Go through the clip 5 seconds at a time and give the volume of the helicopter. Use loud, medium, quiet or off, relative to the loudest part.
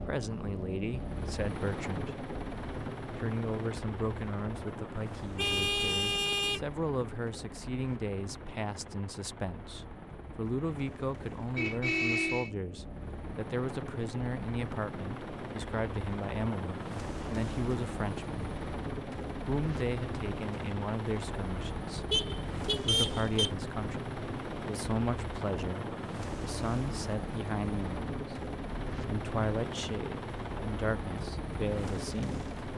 loud, medium, medium, loud, loud, loud, loud.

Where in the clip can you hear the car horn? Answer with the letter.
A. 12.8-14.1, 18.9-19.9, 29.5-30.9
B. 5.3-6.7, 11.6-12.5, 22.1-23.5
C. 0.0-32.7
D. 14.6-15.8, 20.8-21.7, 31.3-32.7
B.